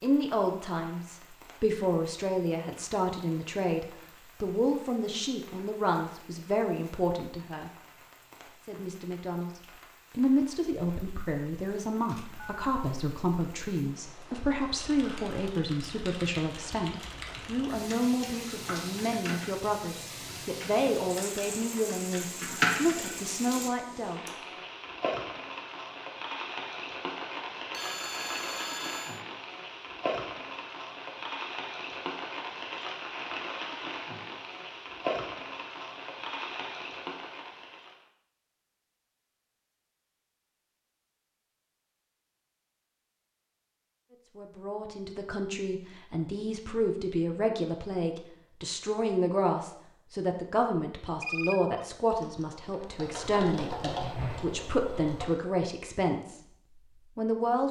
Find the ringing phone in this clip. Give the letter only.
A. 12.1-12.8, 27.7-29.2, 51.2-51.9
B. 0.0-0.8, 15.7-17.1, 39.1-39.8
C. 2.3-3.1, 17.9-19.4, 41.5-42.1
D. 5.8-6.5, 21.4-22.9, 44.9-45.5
A.